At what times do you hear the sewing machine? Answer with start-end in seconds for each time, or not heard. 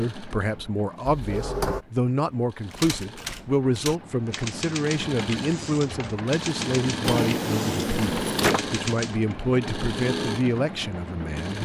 0.0-11.5.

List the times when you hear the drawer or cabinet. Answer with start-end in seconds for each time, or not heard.
1.1-1.9, 7.0-8.6.